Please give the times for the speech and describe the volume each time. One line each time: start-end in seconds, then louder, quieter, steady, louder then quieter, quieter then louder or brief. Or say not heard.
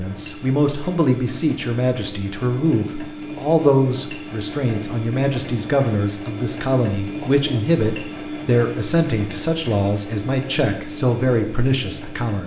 0.0-12.4 steady.